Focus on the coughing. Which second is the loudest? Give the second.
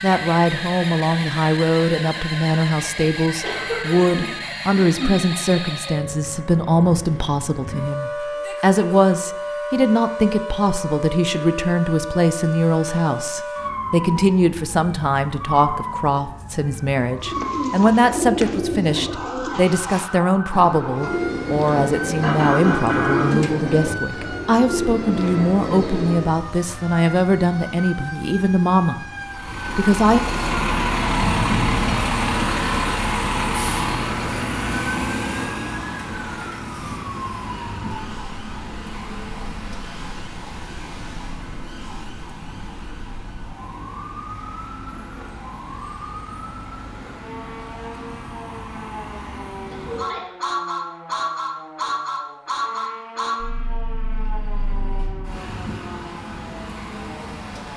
23 s.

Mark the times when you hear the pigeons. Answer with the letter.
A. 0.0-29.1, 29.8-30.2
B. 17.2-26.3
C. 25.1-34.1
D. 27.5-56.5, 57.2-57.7
B.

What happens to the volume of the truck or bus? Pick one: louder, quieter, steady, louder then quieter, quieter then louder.
quieter then louder.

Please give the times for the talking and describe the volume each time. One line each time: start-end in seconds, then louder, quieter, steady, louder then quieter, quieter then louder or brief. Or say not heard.
0.0-29.1 steady
29.8-30.2 brief.